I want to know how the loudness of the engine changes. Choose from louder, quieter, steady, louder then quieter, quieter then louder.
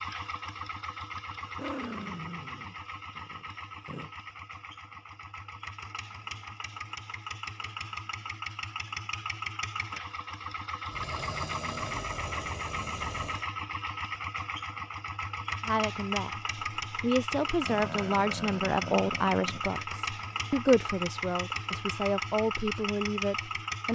louder.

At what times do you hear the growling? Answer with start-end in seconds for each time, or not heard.
1.4-4.1, 10.9-13.5, 17.6-19.6.